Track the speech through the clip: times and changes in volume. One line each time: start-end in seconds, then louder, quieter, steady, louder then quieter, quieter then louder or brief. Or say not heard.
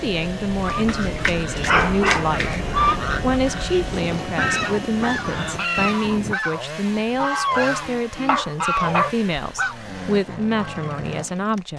0.0-11.7 steady.